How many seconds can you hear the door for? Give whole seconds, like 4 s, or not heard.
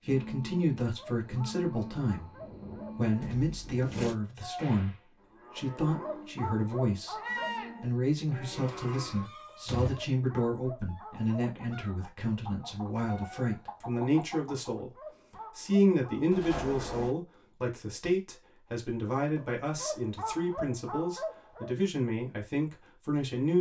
3 s.